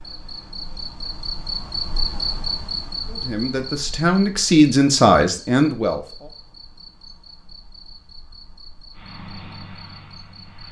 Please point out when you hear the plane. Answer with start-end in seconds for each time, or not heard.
8.9-10.6.